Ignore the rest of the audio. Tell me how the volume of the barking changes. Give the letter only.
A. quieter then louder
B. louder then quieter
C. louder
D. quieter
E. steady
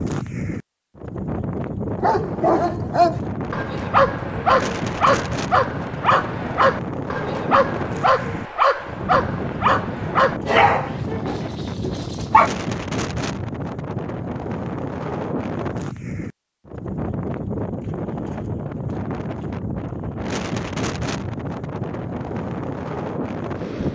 E.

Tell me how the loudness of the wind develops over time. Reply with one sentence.
The volume of the wind stays about the same.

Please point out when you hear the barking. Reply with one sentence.
The barking can be heard from 2.0 to 12.5 s.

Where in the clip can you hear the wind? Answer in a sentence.
The wind can be heard from 0.0 to 23.9 s.